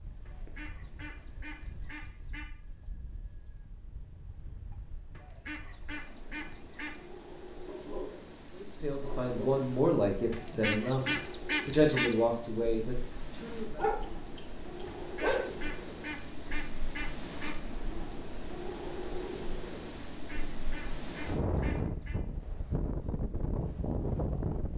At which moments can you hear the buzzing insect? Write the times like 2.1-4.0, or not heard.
not heard.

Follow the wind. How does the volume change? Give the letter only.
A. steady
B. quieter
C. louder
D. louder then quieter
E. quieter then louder
C.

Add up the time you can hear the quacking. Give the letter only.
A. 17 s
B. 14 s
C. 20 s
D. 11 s
D.